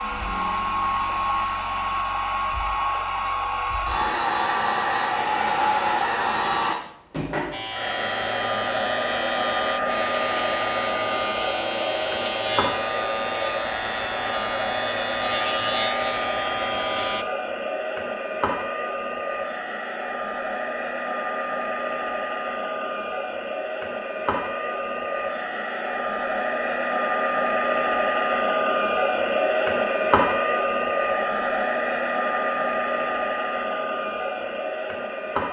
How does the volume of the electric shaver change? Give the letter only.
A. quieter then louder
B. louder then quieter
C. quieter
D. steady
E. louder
D.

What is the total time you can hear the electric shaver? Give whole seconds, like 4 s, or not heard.
10 s.